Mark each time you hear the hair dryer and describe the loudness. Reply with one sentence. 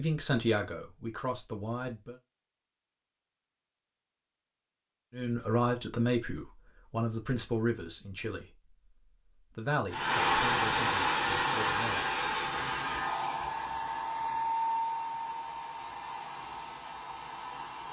The hair dryer can be heard from 9.9 to 17.8 s, getting quieter.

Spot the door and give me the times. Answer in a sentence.
You can't hear the door here.